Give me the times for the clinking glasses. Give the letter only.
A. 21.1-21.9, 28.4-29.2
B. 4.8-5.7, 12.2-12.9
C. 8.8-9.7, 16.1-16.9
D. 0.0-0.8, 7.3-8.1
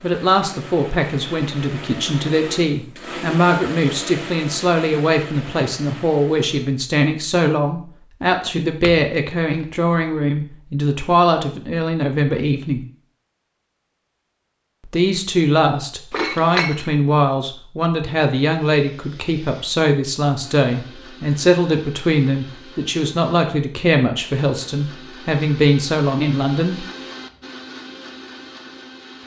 C.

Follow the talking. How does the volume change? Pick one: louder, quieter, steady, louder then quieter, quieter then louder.
steady.